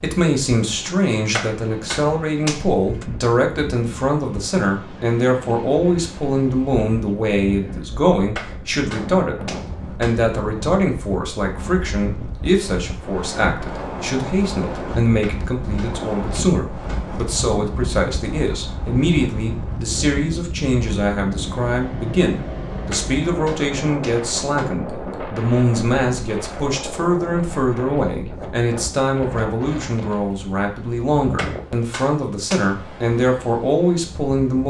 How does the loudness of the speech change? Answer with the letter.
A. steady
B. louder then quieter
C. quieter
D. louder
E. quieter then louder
A.